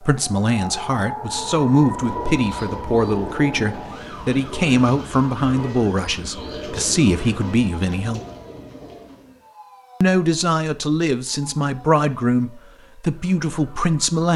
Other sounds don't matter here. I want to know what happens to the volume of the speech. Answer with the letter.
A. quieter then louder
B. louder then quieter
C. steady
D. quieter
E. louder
C.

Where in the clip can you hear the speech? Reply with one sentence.
The speech can be heard from 0.0 to 8.2 s and from 10.0 to 14.3 s.